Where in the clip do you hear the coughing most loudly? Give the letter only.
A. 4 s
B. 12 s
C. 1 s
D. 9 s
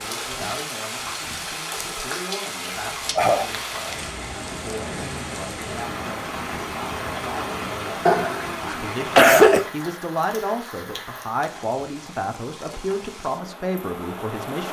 D.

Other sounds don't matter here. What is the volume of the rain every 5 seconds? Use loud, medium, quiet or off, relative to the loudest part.
loud, loud, medium.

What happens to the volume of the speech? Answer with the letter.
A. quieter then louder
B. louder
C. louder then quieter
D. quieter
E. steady
B.